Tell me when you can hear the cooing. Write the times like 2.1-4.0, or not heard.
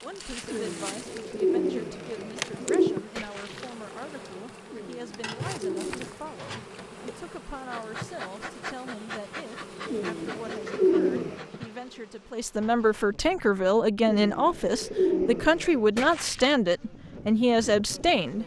0.5-3.0, 4.7-6.2, 9.8-11.4, 14.0-15.8.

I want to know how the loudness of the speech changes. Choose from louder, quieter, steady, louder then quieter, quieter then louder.
louder.